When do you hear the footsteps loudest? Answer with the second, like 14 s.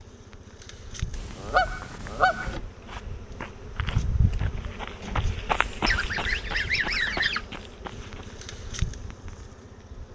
6 s.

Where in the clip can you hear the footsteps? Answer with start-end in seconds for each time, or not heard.
1.6-8.6.